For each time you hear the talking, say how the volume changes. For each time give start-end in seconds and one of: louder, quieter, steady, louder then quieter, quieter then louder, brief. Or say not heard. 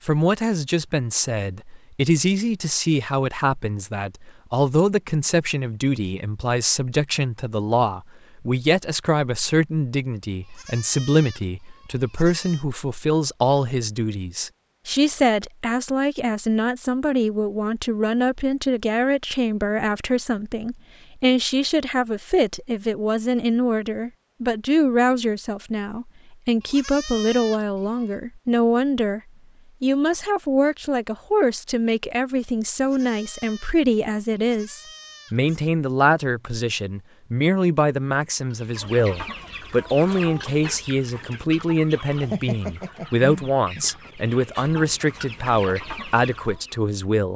0.0-29.2 steady
29.8-47.3 steady.